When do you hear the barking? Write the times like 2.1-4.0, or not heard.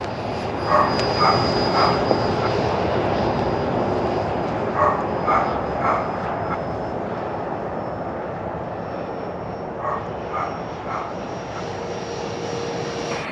0.7-2.5, 4.7-6.5, 9.8-11.7.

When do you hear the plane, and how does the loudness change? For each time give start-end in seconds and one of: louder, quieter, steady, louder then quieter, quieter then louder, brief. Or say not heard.
0.0-13.2 quieter.